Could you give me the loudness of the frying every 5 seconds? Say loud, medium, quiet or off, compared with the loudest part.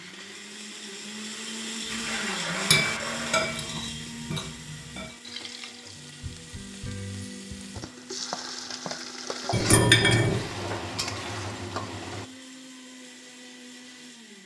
off, loud, loud.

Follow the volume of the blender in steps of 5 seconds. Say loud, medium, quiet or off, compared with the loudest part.
loud, medium, medium.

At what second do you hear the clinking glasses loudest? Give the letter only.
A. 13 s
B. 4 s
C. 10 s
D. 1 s
C.